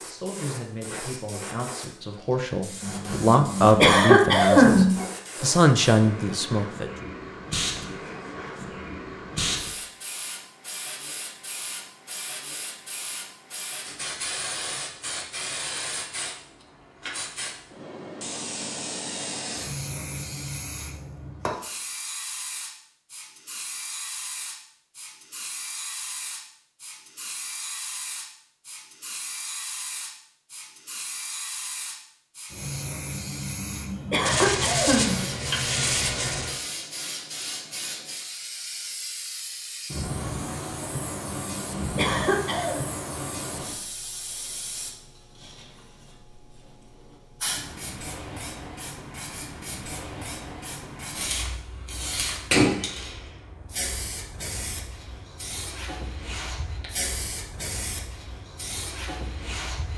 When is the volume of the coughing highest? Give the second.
5 s.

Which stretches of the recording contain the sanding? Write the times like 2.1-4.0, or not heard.
34.2-36.6.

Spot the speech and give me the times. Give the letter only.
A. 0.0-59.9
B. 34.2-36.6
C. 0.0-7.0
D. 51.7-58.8
C.